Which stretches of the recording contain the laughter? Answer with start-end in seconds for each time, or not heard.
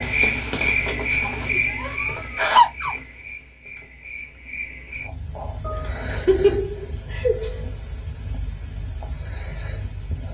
1.2-3.0, 5.6-7.6.